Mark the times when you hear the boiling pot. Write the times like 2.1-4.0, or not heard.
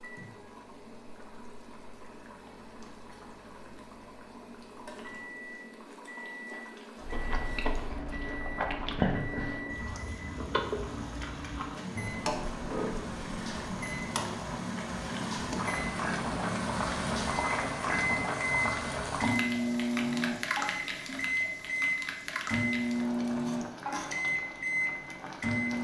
0.0-25.7.